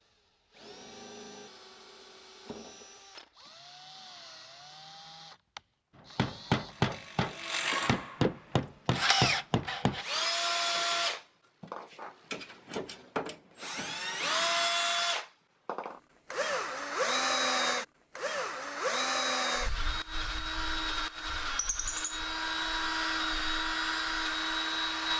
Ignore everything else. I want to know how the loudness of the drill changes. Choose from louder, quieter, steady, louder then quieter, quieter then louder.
louder.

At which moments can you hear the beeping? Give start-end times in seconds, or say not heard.
not heard.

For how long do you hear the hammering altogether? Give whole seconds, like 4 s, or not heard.
4 s.